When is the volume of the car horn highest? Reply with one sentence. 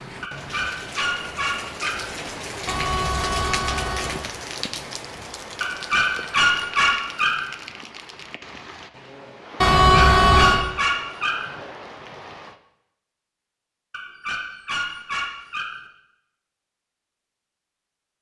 The volume of the car horn peaks at 10 seconds.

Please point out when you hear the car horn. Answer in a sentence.
You can hear the car horn from 2.6 to 4.2 s and from 9.6 to 10.7 s.